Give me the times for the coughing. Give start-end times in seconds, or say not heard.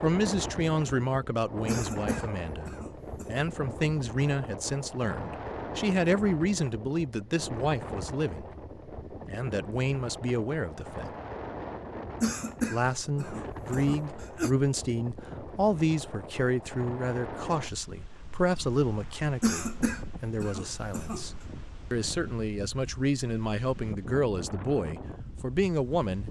1.6-3.4, 12.2-14.5, 19.4-21.2.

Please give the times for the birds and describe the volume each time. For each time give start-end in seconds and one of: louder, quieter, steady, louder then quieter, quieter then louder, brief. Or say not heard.
not heard.